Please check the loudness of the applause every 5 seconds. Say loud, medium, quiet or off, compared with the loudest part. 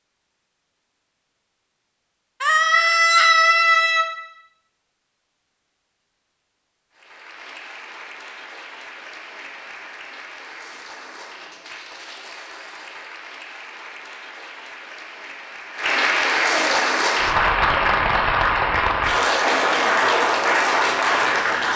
off, quiet, quiet, loud, loud.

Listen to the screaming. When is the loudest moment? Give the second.
3 s.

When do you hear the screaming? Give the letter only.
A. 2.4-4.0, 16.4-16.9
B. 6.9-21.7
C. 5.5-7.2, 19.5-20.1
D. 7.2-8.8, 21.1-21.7
A.